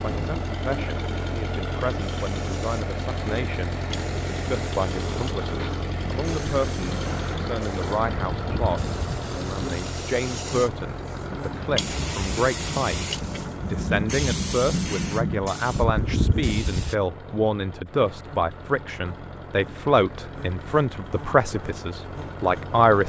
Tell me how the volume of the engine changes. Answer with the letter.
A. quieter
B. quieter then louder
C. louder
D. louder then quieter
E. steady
A.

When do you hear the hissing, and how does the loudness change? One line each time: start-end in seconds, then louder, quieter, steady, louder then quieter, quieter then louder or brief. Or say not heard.
2.0-16.9 louder.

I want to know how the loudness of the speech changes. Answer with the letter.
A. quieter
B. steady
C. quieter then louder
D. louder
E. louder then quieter
D.